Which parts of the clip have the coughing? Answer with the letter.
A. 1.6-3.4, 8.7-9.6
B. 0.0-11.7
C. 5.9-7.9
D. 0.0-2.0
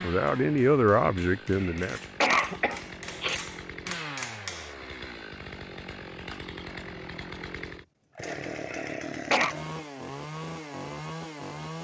A.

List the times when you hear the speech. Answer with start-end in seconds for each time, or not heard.
0.0-2.0.